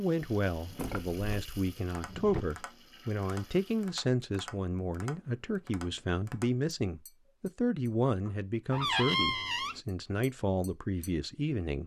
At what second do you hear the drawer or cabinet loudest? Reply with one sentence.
The loudest moment of the drawer or cabinet is at 9 seconds.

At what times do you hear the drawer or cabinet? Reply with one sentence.
You can hear the drawer or cabinet from 0.6 to 2.5 s and from 8.7 to 9.8 s.